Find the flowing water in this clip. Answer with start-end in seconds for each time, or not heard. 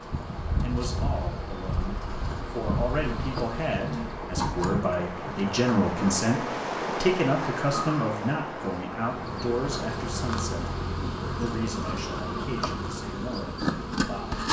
0.0-10.8.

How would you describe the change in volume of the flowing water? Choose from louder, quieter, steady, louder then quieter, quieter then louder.
louder then quieter.